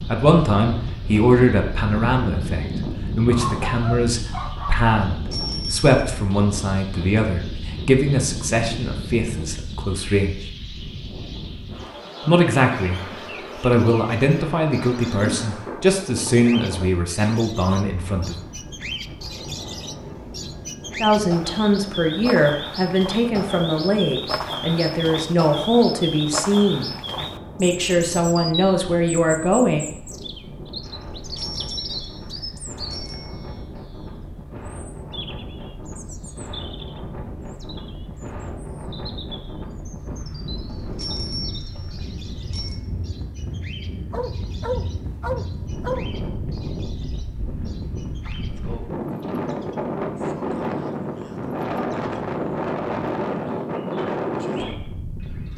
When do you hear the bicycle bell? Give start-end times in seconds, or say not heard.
5.1-6.0, 31.1-33.6, 40.6-42.8.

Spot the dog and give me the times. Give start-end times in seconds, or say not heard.
3.3-4.8, 44.1-46.0.